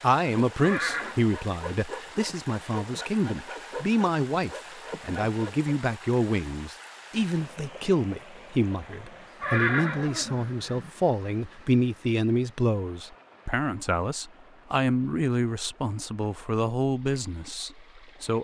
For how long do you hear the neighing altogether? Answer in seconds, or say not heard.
2 s.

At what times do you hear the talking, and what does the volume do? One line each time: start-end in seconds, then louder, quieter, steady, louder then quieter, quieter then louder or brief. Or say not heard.
0.0-18.3 steady.